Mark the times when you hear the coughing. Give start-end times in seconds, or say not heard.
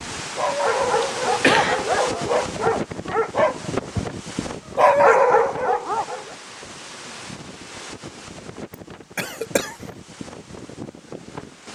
1.0-1.8, 9.2-9.8.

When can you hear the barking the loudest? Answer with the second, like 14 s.
5 s.